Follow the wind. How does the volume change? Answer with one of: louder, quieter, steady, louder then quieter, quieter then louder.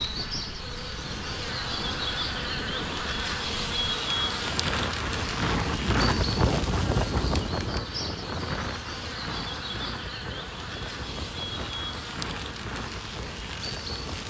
louder then quieter.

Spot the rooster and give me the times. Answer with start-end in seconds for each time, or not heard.
not heard.